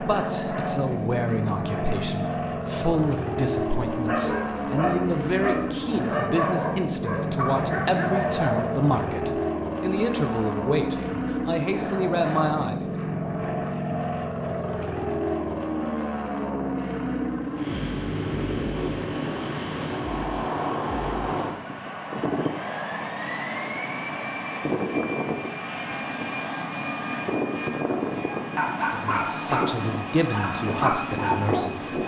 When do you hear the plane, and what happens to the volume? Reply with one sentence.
The plane can be heard from 0.0 to 32.0 s, at a steady volume.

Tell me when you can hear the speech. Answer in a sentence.
The speech can be heard from 0.0 to 13.0 s and from 28.9 to 32.0 s.